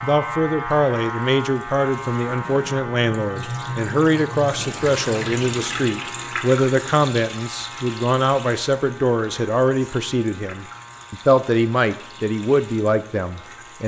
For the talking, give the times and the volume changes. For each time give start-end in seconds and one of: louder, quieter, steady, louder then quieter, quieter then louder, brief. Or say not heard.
0.0-13.8 steady.